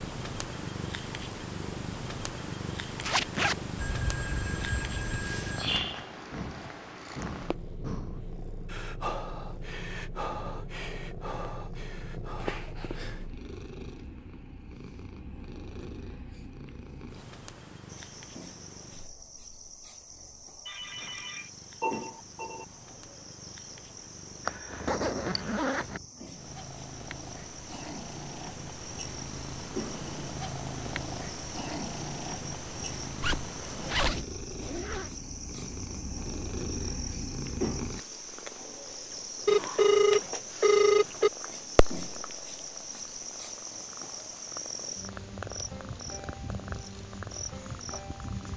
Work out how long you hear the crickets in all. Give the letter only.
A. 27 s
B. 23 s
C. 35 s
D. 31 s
D.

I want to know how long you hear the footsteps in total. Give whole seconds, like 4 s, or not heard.
not heard.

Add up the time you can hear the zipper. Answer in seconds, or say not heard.
4 s.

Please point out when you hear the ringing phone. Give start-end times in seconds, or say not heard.
3.8-5.8, 20.6-22.6, 39.5-41.3.